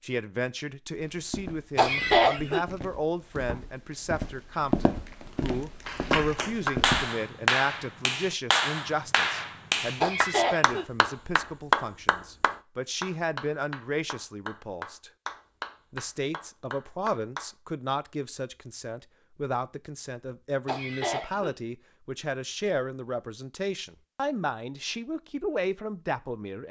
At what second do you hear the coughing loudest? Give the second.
2 s.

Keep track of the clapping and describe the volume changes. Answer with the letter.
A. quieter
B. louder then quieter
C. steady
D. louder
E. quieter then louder
A.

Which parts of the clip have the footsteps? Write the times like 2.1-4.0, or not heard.
0.9-7.1.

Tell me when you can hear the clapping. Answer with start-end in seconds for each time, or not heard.
5.8-17.5.